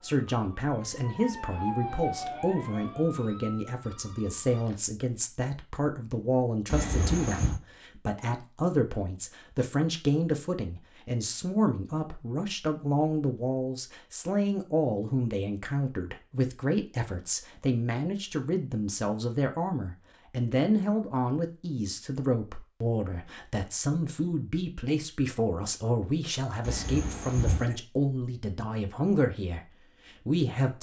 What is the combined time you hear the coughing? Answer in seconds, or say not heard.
2 s.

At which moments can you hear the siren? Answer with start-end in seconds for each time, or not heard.
0.0-4.0.